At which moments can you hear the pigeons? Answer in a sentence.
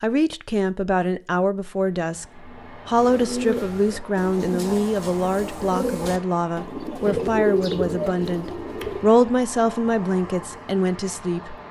The pigeons can be heard from 3.0 to 9.1 s.